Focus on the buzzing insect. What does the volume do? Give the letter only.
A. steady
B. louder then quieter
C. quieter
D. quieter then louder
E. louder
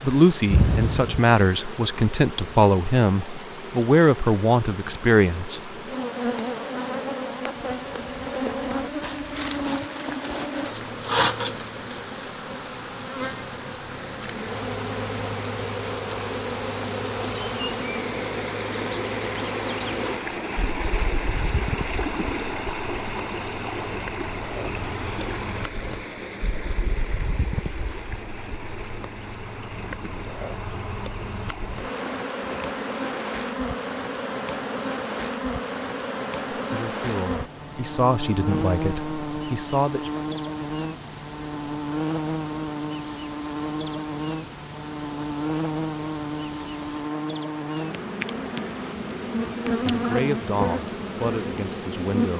D.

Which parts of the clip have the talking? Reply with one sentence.
You can hear the talking from 0.0 to 5.7 s, from 36.7 to 40.1 s and from 49.9 to 52.3 s.